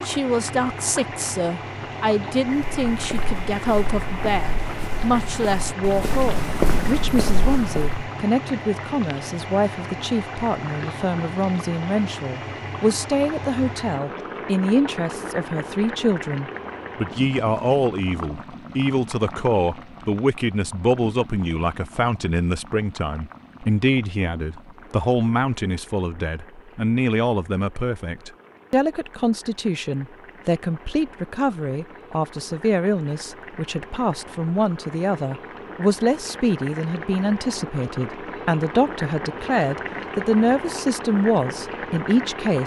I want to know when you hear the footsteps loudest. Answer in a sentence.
The loudest moment of the footsteps is at 7 seconds.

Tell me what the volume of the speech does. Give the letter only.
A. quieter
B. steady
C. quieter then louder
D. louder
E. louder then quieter
B.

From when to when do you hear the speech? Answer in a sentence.
You can hear the speech from 0.1 to 42.6 s.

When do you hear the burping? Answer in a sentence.
The burping can't be heard in this clip.